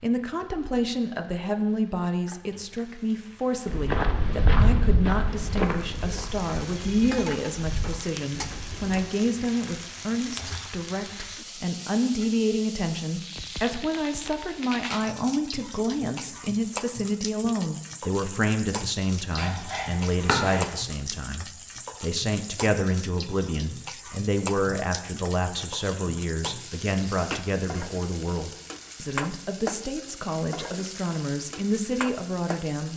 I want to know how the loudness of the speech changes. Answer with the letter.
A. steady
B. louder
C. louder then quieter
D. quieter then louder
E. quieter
A.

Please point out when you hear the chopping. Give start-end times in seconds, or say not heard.
19.4-20.9.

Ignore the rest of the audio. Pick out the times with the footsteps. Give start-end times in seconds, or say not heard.
3.6-9.1.